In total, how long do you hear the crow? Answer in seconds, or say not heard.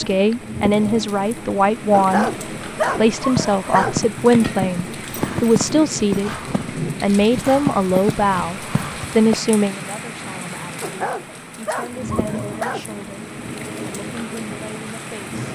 not heard.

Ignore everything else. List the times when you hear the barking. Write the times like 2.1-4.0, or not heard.
1.9-4.0, 10.8-12.8.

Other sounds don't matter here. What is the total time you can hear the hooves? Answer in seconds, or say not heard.
6 s.